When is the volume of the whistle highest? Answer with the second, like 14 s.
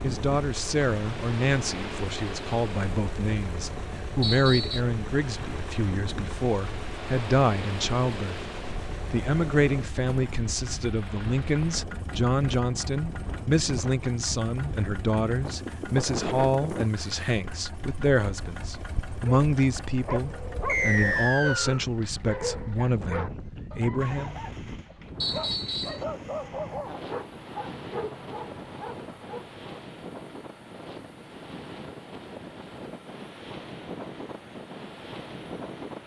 21 s.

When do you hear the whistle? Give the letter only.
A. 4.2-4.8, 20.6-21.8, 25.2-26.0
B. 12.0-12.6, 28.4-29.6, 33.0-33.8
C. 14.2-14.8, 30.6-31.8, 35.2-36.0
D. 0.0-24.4
A.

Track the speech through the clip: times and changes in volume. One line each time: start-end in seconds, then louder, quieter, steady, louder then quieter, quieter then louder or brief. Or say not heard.
0.0-24.4 steady.